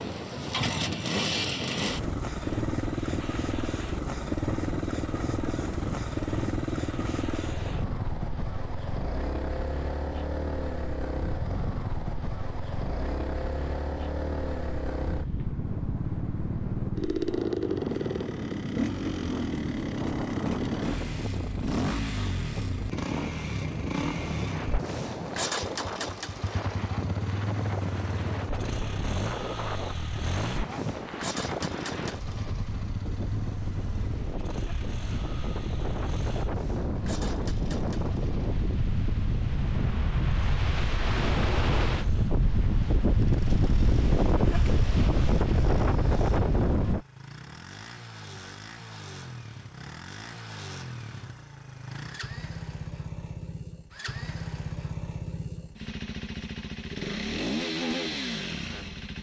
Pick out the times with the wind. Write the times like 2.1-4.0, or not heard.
0.0-47.0.